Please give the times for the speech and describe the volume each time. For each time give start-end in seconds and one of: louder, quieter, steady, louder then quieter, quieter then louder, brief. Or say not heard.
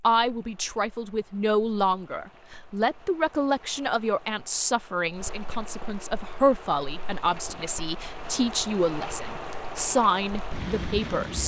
0.0-11.4 steady.